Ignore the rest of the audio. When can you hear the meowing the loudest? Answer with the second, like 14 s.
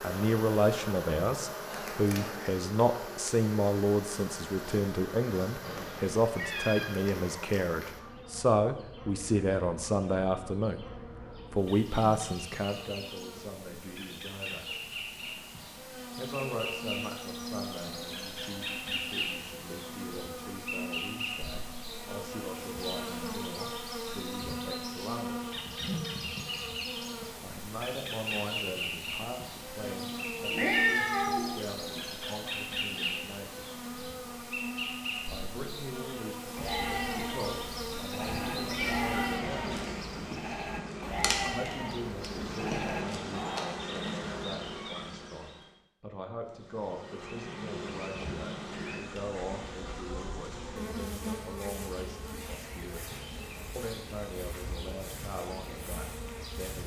31 s.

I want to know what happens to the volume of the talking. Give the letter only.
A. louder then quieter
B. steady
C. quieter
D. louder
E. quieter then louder
C.